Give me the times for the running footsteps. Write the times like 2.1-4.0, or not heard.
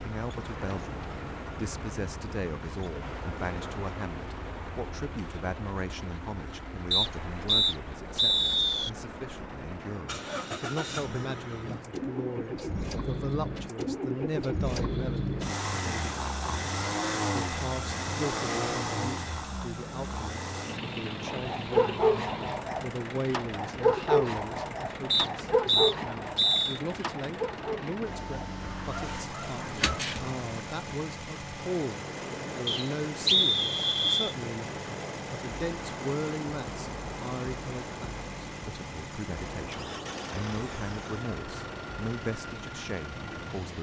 not heard.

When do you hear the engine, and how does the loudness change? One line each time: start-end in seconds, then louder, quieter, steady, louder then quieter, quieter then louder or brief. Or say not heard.
0.0-43.7 louder then quieter.